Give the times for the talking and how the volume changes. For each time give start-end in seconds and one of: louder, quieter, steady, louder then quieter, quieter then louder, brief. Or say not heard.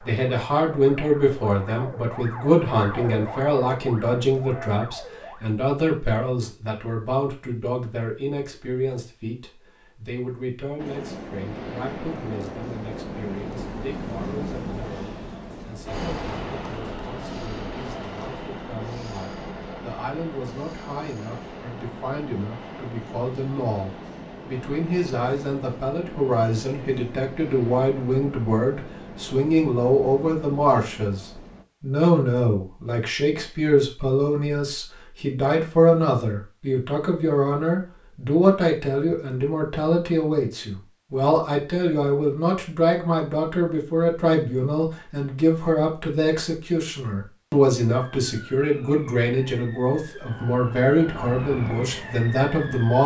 0.0-53.0 quieter then louder.